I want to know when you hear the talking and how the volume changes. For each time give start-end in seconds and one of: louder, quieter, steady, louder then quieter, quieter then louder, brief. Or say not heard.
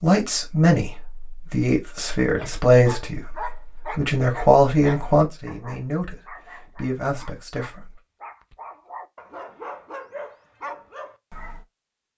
0.0-8.0 quieter.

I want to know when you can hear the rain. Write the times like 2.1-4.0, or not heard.
not heard.